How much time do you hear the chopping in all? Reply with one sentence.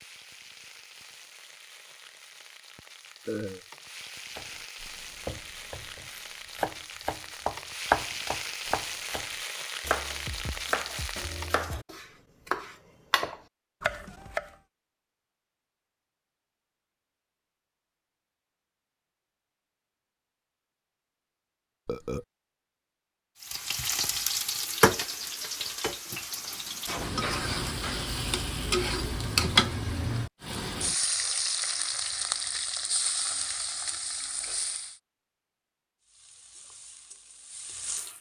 The chopping can be heard for 10 seconds in total.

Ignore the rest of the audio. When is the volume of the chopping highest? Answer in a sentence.
The volume of the chopping peaks at 8 seconds.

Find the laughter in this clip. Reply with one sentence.
You can't hear the laughter here.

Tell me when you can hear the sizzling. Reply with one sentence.
You can hear the sizzling from 0.0 to 11.8 s, from 23.4 to 35.0 s and from 36.0 to 38.1 s.